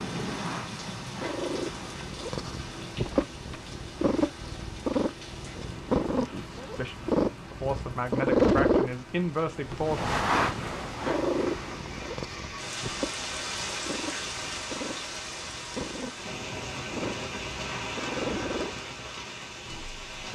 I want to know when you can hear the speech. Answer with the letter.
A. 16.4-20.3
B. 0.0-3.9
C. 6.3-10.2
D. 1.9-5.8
C.